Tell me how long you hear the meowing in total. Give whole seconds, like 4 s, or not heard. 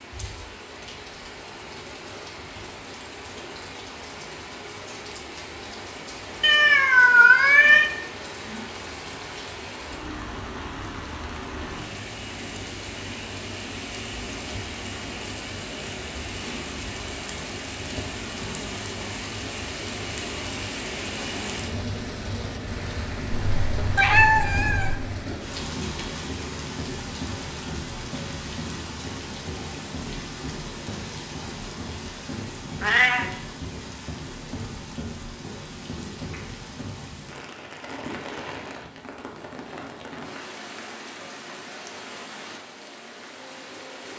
4 s.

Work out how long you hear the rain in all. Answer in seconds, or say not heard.
44 s.